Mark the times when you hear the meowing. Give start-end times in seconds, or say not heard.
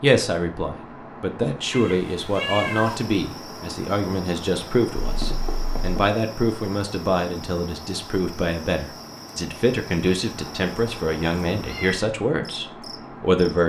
1.7-3.0, 5.0-6.0, 10.3-12.1.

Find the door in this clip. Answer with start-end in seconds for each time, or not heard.
not heard.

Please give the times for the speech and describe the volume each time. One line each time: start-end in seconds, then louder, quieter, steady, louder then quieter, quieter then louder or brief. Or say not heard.
0.0-13.6 steady.